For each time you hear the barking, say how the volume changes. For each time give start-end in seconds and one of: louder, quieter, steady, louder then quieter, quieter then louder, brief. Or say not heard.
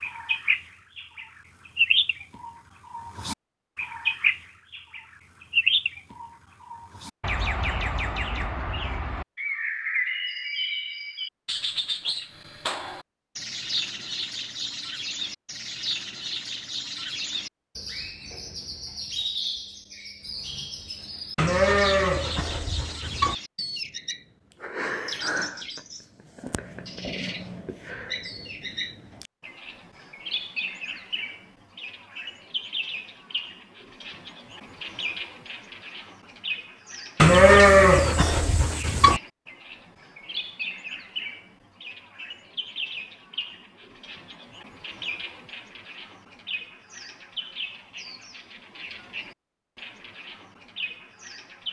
not heard.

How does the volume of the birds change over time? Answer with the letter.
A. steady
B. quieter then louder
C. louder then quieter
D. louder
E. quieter
E.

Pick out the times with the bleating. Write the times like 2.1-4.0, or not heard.
21.4-23.4, 37.1-39.2.